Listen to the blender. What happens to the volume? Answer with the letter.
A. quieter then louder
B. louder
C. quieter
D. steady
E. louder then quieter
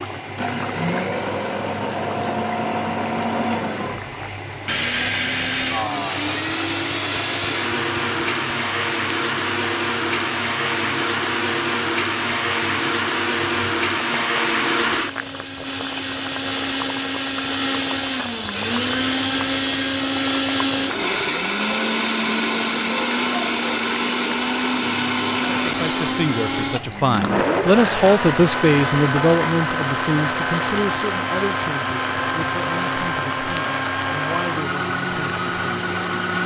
D.